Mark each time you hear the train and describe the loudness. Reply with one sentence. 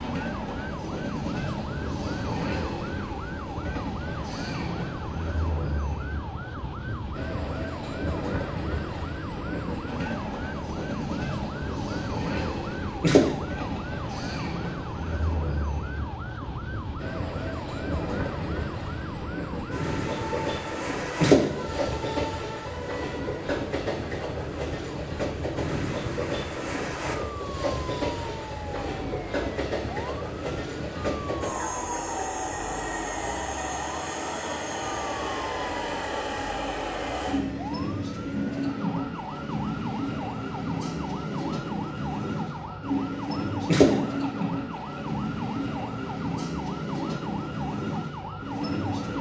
The train can be heard from 0.0 to 49.1 s, at a steady volume.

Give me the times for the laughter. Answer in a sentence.
You can hear the laughter from 13.0 to 13.8 s, from 21.2 to 21.9 s and from 43.6 to 44.5 s.